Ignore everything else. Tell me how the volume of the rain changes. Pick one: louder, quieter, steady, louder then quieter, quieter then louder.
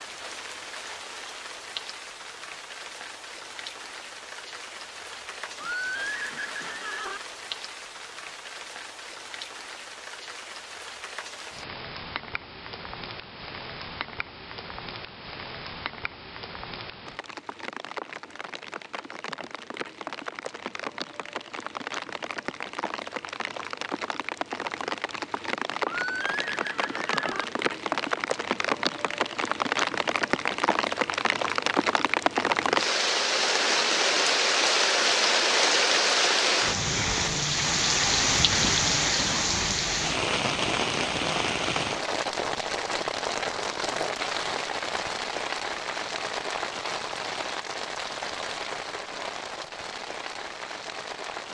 louder then quieter.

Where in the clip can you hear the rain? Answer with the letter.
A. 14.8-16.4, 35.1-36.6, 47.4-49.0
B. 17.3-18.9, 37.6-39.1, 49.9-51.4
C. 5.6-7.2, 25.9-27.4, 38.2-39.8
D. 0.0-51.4
D.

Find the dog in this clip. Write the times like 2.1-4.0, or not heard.
not heard.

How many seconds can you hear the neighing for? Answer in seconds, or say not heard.
5 s.